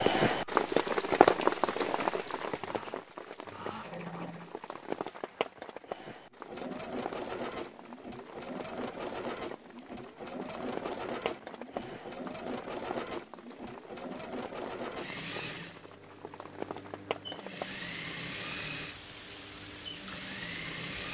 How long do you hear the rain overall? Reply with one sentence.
You can hear the rain for 21 seconds altogether.